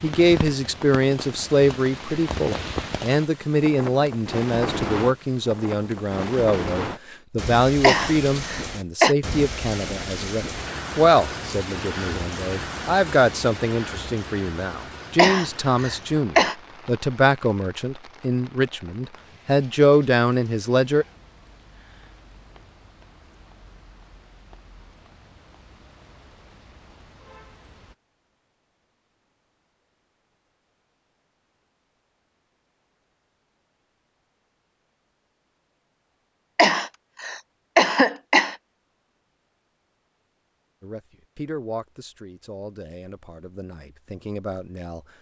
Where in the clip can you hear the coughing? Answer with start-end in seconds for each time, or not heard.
7.8-9.2, 15.2-16.6, 36.5-38.5.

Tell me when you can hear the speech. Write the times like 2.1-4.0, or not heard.
0.0-21.1, 40.8-45.0.